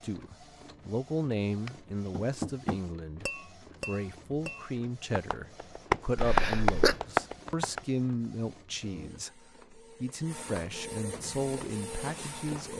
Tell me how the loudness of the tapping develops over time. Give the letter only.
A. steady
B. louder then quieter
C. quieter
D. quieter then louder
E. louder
D.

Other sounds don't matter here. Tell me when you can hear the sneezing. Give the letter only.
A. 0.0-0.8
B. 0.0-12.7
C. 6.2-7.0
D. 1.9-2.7
C.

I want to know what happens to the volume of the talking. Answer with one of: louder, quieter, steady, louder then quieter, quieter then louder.
steady.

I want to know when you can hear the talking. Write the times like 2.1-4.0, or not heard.
0.0-12.7.